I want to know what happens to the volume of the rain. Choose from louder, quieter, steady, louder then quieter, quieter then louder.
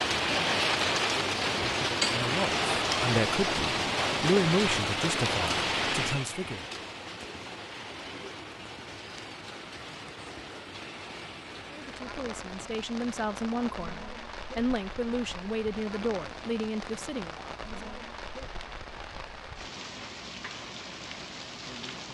quieter.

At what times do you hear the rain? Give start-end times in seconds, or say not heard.
0.0-22.0.